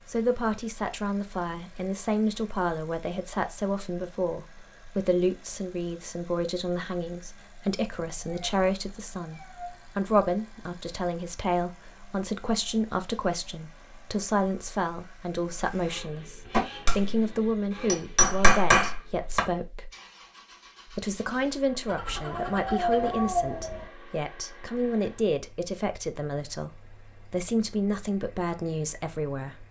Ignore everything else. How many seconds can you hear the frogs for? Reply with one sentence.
You can't hear the frogs here.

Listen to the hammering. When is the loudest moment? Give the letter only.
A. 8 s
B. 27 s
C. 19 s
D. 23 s
C.